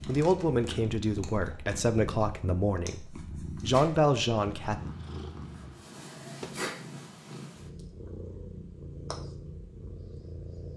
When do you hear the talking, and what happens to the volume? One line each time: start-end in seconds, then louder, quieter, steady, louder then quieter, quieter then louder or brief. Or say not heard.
0.0-4.8 quieter then louder.